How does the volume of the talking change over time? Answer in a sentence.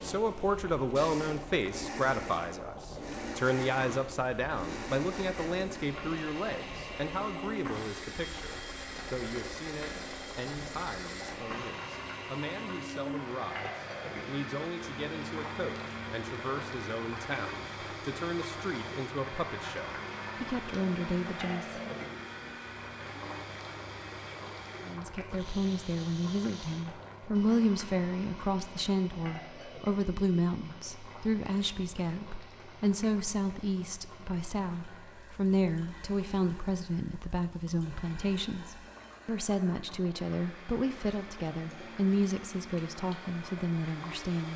The loudness of the talking goes down, then up.